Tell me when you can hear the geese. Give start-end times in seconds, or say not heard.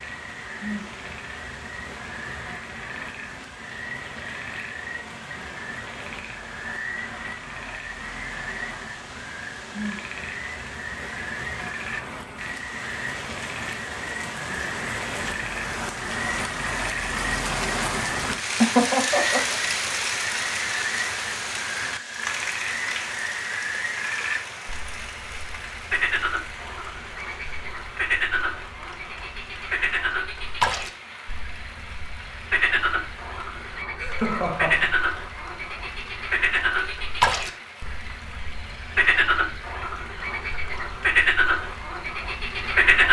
not heard.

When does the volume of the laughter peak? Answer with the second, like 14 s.
19 s.